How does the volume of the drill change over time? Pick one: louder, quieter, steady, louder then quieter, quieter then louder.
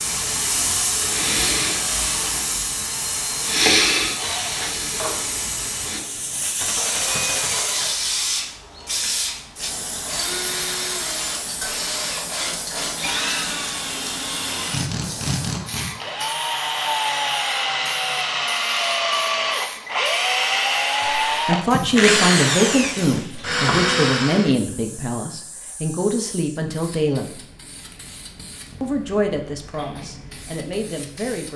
louder.